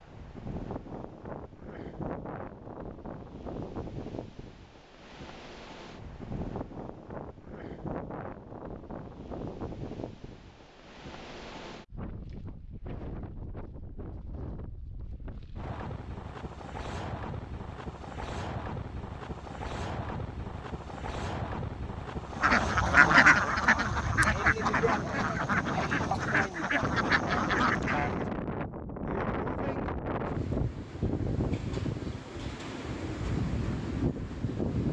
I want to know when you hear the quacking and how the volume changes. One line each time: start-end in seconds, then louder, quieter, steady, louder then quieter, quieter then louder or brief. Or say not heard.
22.4-28.2 quieter.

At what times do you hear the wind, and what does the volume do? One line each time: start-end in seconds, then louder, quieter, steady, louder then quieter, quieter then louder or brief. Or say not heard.
0.0-34.8 louder.